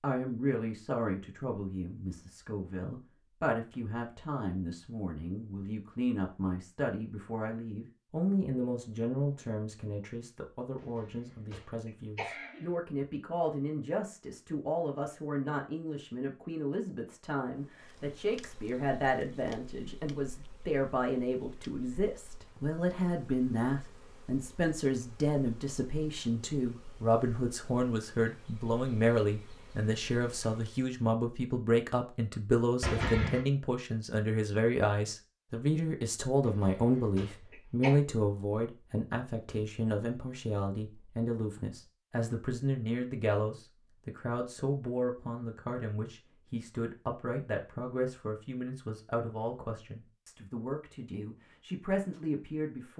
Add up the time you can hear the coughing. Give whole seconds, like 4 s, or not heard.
4 s.